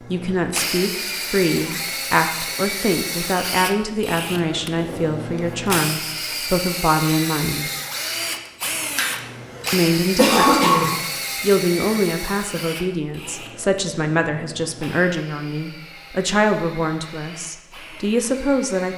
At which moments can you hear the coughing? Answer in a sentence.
You can hear the coughing from 8.9 to 10.9 s.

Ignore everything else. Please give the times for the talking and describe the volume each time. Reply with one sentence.
The talking can be heard from 0.1 to 7.7 s, at a steady volume; and from 9.7 to 18.9 s, at a steady volume.